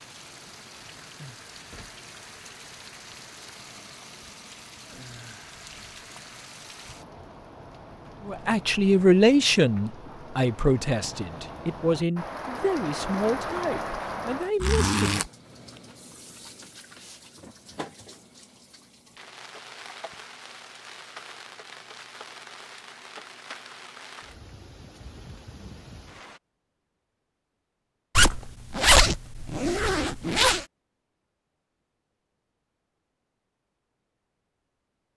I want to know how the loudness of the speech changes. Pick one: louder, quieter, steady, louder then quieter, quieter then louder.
quieter.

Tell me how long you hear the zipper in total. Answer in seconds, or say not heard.
3 s.